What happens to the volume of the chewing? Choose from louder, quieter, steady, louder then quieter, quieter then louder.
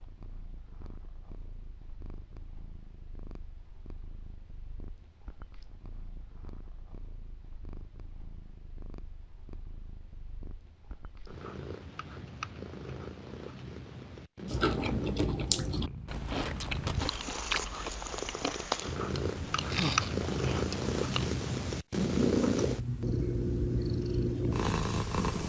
quieter then louder.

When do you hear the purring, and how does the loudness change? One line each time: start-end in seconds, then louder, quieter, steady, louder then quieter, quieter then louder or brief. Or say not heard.
0.0-25.4 louder.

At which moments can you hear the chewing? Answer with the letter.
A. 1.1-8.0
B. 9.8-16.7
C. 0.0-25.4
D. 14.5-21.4
D.